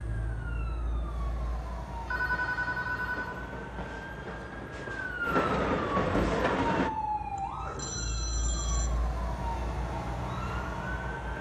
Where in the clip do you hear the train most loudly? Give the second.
6 s.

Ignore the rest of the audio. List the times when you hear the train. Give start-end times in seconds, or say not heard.
2.1-6.9.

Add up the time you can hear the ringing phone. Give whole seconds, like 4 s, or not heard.
3 s.